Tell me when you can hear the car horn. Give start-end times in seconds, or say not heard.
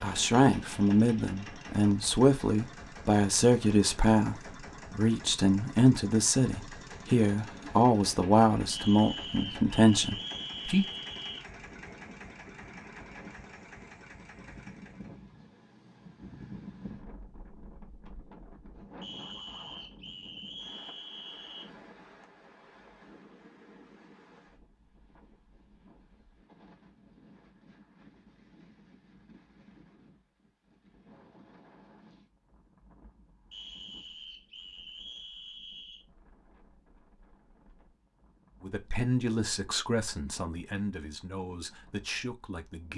not heard.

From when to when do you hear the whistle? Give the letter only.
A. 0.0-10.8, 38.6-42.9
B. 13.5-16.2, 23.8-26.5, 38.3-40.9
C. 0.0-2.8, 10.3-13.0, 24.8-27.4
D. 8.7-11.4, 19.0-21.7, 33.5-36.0
D.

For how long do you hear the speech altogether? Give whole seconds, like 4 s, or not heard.
15 s.